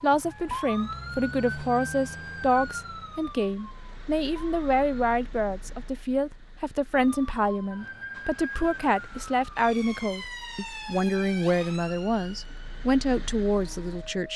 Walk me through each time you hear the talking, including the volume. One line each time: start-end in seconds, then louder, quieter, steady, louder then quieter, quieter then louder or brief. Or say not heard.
0.0-14.3 steady.